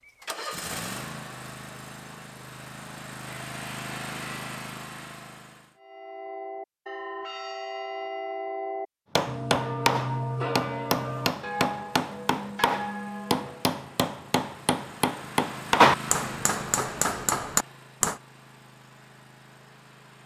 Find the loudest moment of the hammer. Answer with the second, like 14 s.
16 s.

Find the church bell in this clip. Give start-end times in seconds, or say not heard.
5.8-13.8.